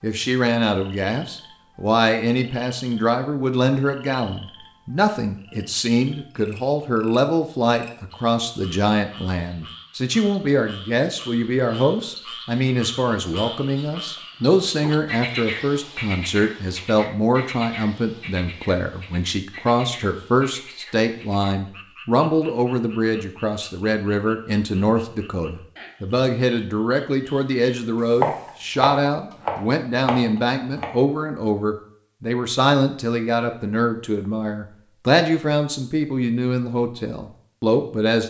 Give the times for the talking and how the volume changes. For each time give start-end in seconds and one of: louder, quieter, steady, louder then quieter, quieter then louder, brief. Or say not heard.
0.0-38.2 steady.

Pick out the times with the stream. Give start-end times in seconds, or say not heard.
not heard.